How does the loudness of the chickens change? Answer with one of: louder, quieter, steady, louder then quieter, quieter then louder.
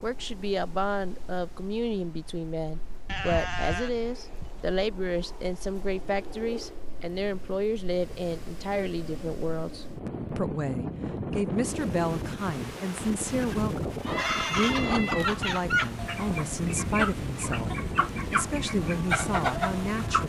steady.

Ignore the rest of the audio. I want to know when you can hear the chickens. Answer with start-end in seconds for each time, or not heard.
14.1-20.2.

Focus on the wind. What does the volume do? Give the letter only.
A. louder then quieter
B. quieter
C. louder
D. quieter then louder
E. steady
C.